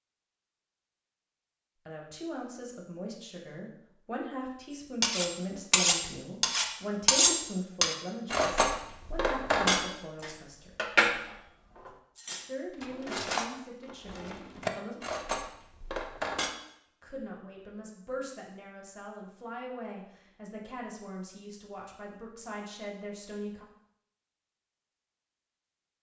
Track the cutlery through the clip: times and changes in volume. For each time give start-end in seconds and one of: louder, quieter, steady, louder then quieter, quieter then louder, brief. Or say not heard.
5.0-16.6 quieter.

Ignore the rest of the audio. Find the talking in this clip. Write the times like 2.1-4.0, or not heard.
1.9-10.8, 12.4-15.0, 17.0-23.6.